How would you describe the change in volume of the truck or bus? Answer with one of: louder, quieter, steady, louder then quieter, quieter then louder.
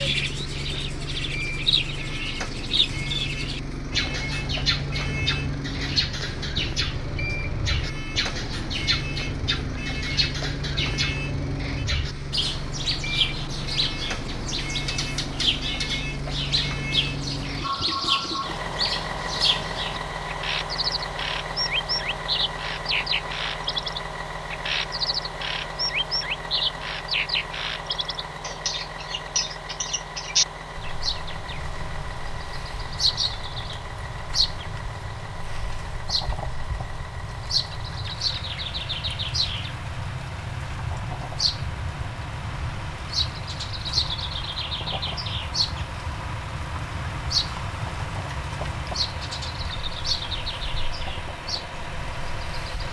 quieter.